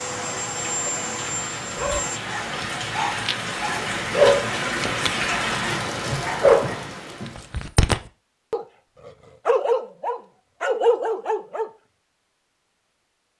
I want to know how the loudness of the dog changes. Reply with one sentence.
The loudness of the dog goes up.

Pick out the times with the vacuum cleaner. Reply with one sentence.
You can hear the vacuum cleaner from 0.0 to 2.2 s.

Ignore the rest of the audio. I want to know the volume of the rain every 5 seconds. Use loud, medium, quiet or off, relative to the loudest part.
loud, loud, off.